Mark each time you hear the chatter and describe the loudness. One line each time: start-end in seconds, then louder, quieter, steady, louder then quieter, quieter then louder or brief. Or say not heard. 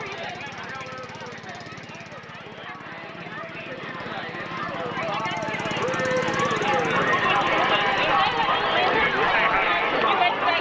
0.0-10.5 louder.